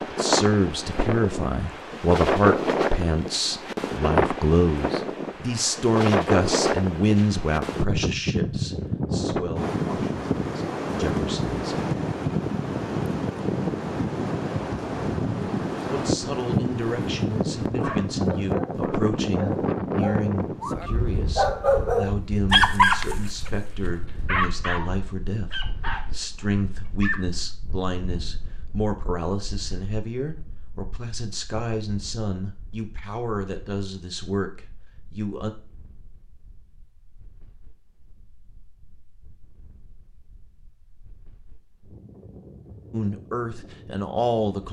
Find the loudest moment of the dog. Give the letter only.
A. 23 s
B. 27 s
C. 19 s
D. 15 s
A.